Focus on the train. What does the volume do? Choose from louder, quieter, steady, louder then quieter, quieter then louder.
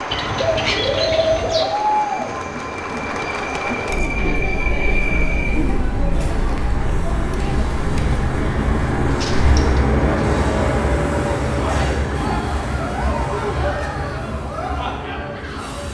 louder then quieter.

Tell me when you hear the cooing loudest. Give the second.
1 s.